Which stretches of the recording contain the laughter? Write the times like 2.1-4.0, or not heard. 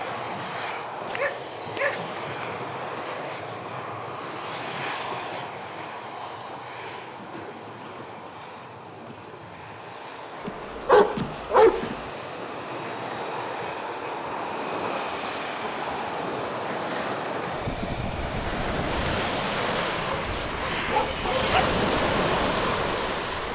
not heard.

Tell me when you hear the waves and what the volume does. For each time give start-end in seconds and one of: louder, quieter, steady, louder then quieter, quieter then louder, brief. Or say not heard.
0.0-23.5 louder.